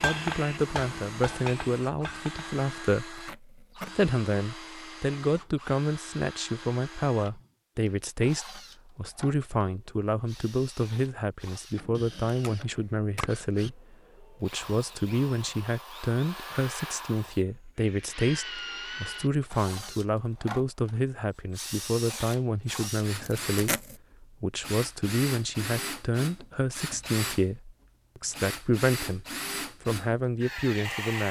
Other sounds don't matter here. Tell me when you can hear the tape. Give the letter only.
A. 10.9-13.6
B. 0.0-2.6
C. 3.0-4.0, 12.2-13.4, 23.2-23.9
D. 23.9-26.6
C.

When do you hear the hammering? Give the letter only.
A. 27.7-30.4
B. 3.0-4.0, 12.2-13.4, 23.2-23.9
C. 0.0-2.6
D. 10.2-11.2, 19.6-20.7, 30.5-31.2
C.